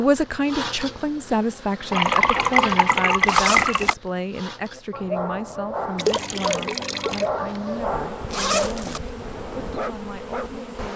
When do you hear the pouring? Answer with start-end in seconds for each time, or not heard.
1.9-4.0, 6.0-7.2.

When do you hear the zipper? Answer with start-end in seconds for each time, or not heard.
3.2-4.0, 8.3-9.0.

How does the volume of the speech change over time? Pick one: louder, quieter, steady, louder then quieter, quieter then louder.
quieter.